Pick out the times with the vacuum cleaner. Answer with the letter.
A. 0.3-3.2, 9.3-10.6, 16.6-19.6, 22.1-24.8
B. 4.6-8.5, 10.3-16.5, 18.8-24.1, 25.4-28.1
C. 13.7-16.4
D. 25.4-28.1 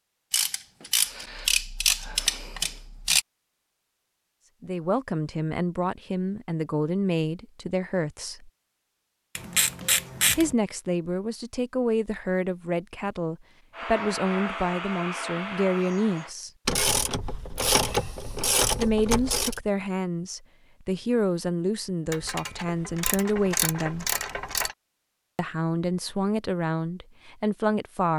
C.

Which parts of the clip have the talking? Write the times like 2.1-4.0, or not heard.
4.6-8.5, 10.3-16.5, 18.8-24.1, 25.4-28.1.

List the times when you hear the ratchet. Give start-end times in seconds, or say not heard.
0.3-3.2, 9.3-10.6, 16.6-19.6, 22.1-24.8.